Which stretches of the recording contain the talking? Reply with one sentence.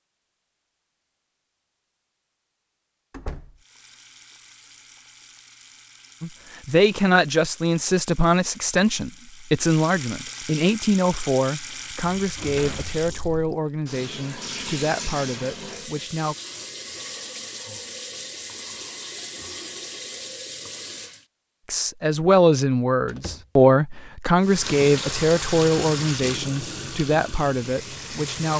You can hear the talking from 6.2 to 16.4 s and from 21.6 to 28.5 s.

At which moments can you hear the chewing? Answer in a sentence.
You can't hear the chewing here.